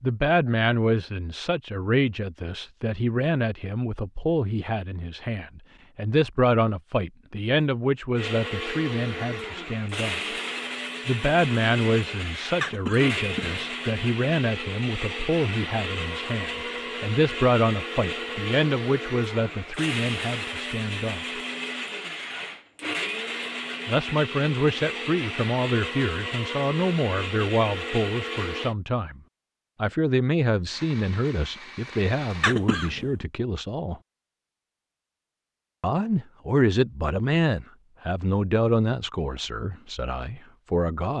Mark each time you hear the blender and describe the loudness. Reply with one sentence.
The blender can be heard from 8.2 to 28.8 s, at a steady volume; and briefly from 30.6 to 32.5 s.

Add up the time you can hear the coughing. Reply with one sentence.
The coughing can be heard for 2 seconds in total.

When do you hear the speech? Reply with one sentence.
The speech can be heard from 0.0 to 10.2 s, from 11.1 to 21.2 s, from 23.9 to 29.2 s, from 29.8 to 34.0 s and from 35.8 to 41.1 s.